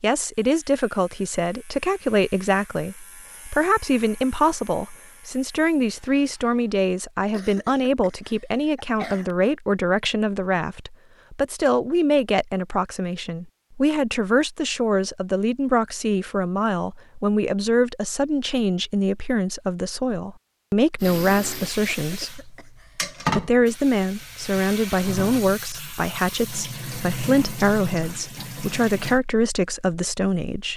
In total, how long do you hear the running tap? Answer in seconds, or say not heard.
8 s.